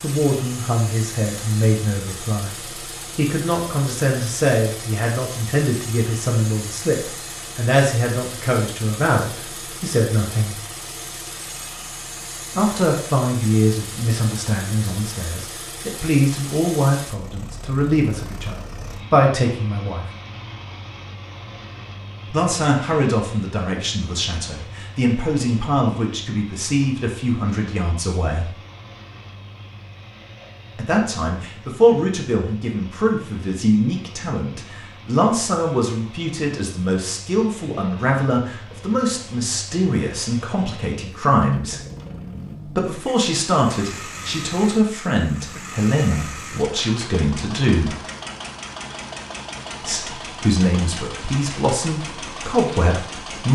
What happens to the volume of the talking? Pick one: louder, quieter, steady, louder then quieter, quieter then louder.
steady.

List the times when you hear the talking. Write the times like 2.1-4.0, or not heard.
0.0-10.6, 12.6-20.1, 22.3-28.5, 30.8-41.8, 42.6-48.0, 49.8-53.5.